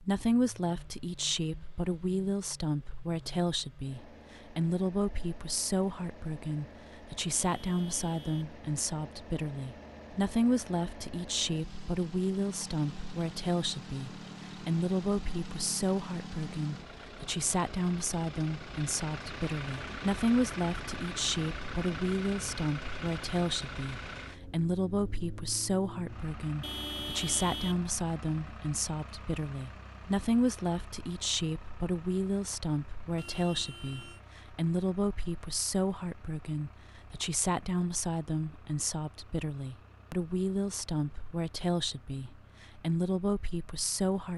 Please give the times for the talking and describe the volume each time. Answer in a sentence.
The talking can be heard from 0.0 to 44.3 s, at a steady volume.